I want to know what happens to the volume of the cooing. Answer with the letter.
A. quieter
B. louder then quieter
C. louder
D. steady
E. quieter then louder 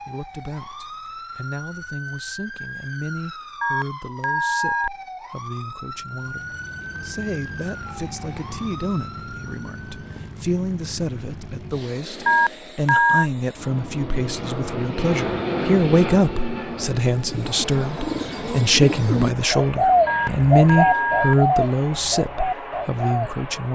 B.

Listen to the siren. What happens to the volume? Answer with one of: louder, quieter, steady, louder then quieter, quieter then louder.
steady.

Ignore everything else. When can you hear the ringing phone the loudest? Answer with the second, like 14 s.
13 s.